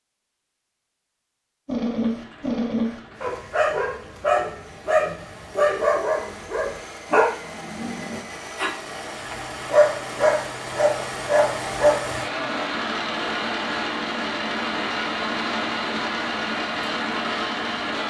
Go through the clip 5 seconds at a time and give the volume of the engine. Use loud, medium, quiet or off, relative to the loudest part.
quiet, medium, loud, loud.